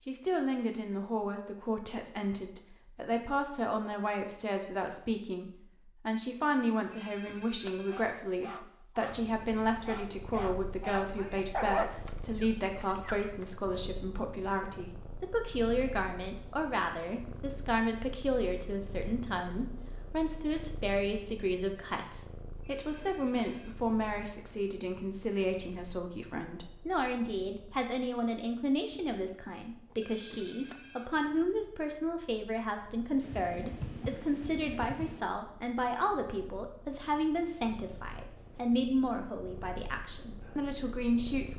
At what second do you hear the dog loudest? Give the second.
12 s.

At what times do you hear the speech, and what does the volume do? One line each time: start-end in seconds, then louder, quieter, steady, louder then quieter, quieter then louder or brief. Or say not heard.
0.1-41.5 steady.